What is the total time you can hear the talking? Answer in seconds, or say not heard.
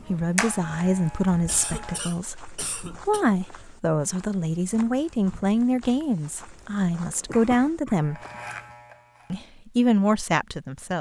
10 s.